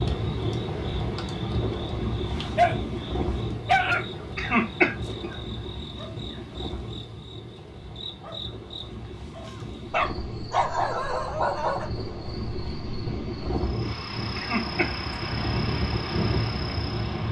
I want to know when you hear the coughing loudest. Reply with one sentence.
The loudest moment of the coughing is at 5 seconds.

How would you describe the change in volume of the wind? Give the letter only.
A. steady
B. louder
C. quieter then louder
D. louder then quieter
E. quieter
C.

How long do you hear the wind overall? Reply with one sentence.
You can hear the wind for 17 seconds altogether.